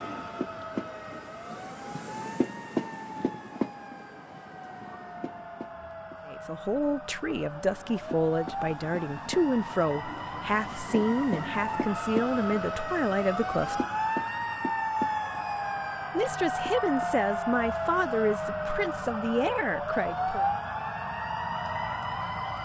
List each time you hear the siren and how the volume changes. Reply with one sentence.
The siren can be heard from 0.0 to 22.6 s, getting louder.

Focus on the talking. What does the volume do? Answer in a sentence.
The volume of the talking stays about the same.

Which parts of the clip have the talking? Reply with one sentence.
The talking can be heard from 6.2 to 13.8 s and from 16.1 to 20.4 s.